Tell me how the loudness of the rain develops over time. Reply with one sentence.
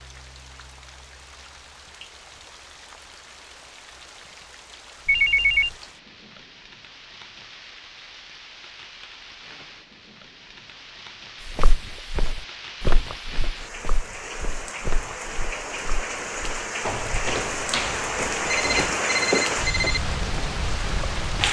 The volume of the rain goes up.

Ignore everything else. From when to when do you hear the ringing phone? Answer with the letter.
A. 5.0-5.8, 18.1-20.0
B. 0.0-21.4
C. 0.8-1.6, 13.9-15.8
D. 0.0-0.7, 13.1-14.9
A.